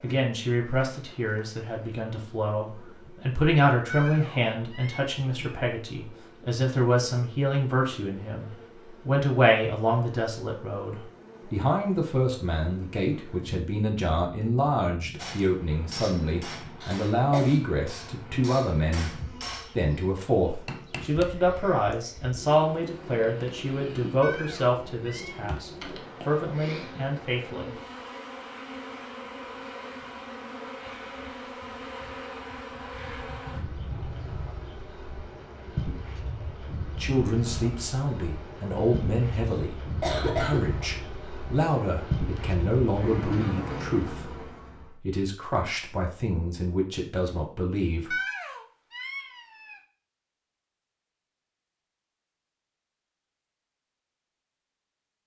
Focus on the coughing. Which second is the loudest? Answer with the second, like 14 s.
40 s.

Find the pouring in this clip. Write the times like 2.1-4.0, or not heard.
not heard.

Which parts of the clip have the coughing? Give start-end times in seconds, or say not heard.
16.8-17.4, 39.5-40.6.